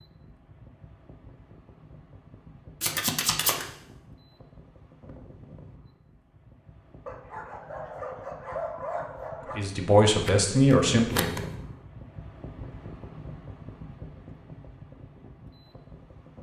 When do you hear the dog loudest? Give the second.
9 s.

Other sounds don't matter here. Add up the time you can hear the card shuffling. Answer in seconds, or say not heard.
2 s.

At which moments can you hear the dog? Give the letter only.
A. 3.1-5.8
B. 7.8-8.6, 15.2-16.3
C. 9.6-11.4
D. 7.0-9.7
D.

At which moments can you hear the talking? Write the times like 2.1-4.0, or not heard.
9.6-11.4.